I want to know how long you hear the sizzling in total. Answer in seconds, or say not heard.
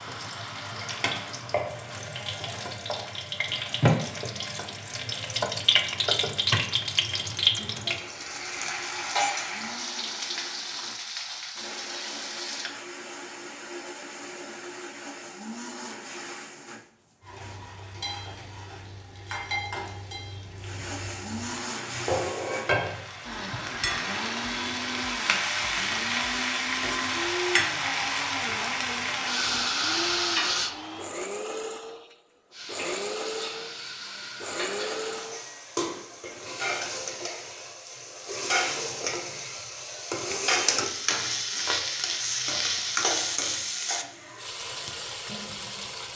40 s.